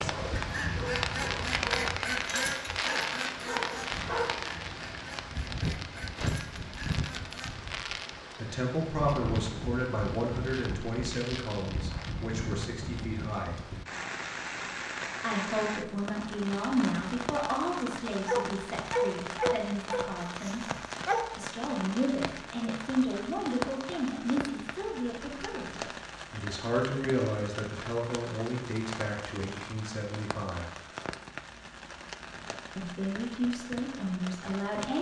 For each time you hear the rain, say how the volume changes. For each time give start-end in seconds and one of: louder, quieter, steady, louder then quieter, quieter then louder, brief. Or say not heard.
0.0-34.9 quieter.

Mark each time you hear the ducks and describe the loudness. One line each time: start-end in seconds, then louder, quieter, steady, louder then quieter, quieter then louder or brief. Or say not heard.
0.3-7.5 quieter.